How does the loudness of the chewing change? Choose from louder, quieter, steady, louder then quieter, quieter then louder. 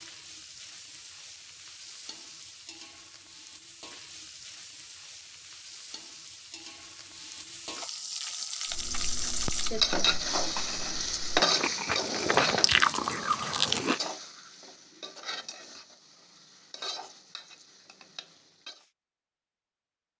quieter then louder.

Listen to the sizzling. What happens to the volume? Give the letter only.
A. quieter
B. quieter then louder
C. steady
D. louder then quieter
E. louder
D.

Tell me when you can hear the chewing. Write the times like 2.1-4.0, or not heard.
8.7-14.0.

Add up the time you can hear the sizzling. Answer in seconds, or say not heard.
19 s.